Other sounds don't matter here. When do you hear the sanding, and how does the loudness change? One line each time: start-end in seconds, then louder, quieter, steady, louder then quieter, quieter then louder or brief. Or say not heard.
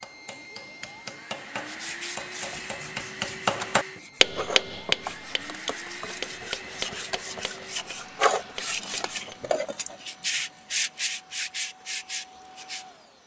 1.6-12.8 louder.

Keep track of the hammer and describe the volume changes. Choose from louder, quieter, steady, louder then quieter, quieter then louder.
louder then quieter.